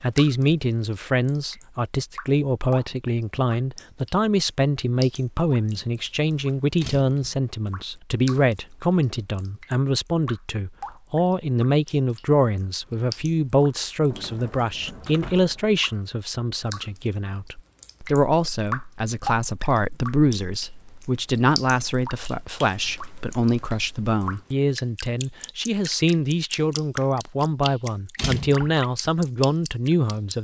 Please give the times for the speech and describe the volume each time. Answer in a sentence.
You can hear the speech from 0.0 to 30.3 s, at a steady volume.